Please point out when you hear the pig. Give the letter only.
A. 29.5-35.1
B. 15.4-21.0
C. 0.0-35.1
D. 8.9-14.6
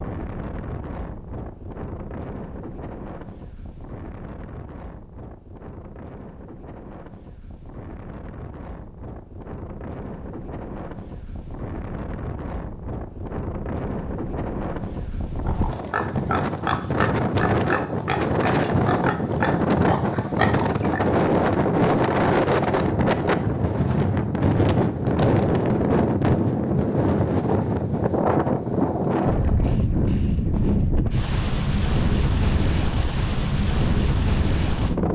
B.